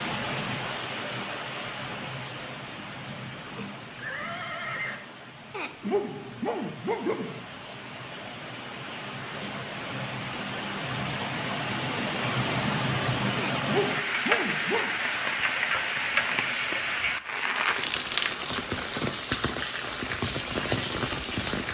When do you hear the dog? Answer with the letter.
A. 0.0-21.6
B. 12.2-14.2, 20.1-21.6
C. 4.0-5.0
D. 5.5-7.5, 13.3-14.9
D.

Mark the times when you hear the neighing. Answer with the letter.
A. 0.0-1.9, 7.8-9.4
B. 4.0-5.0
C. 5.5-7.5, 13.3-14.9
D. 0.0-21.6
B.